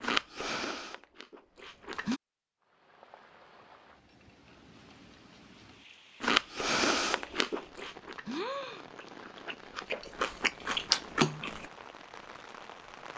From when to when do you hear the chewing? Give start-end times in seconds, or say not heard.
0.0-2.2, 6.2-11.7.